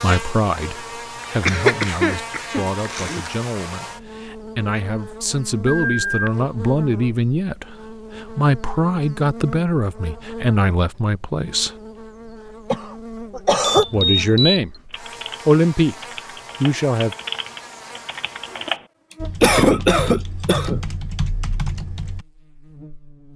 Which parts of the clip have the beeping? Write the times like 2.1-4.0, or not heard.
5.8-6.3, 13.6-14.6.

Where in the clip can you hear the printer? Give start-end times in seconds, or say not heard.
not heard.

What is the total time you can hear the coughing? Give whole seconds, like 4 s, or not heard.
5 s.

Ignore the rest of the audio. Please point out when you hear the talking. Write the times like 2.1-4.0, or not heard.
0.0-11.8, 13.9-14.7, 15.4-15.9, 16.6-17.1.